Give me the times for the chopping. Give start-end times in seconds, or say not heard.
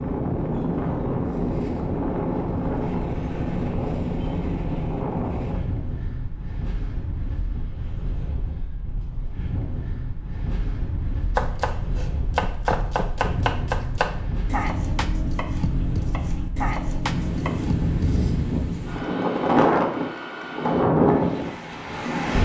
11.3-18.2.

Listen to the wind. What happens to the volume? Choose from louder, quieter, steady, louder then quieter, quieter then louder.
quieter then louder.